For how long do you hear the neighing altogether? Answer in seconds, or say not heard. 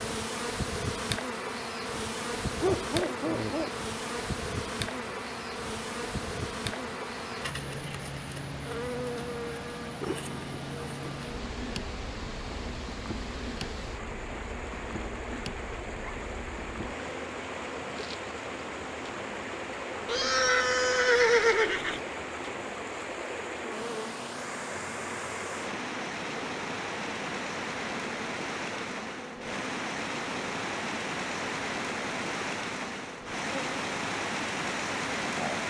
2 s.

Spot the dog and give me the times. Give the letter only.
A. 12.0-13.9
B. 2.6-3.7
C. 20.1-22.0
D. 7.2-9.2
B.